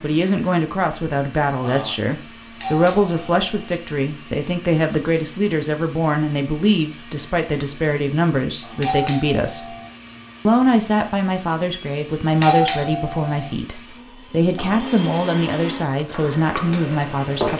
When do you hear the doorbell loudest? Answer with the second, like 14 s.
13 s.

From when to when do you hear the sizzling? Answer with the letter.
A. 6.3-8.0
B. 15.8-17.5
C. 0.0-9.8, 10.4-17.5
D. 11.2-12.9
B.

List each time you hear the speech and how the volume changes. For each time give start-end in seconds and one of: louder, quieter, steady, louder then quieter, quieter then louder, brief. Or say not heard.
0.0-9.8 steady
10.4-17.5 steady.